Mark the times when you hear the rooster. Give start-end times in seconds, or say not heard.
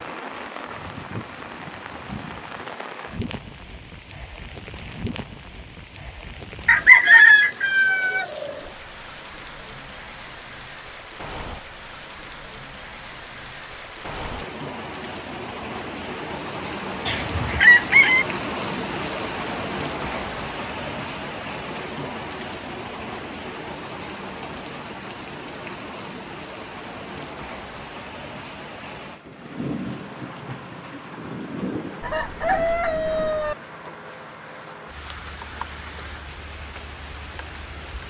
6.7-8.2, 17.1-18.2, 32.0-33.5.